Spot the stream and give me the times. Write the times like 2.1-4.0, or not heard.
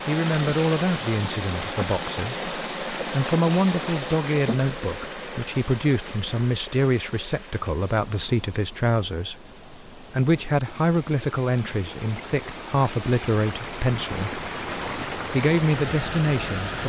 0.0-16.8.